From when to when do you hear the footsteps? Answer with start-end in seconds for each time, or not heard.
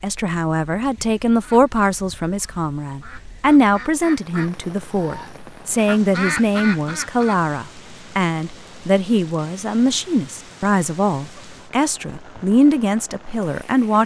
not heard.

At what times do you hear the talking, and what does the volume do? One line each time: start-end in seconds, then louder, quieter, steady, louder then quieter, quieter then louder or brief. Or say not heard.
0.0-14.0 steady.